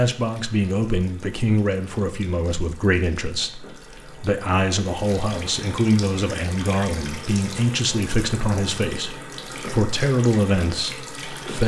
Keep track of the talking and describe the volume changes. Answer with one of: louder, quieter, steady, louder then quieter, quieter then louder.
steady.